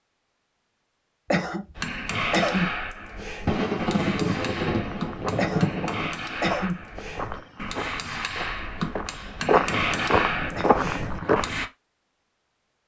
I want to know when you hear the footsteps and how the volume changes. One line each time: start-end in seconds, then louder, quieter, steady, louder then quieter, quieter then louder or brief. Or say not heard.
4.9-11.5 louder.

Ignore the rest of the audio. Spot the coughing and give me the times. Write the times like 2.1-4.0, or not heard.
1.3-2.7, 5.3-6.8, 9.5-10.9.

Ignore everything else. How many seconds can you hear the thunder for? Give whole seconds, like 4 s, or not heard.
3 s.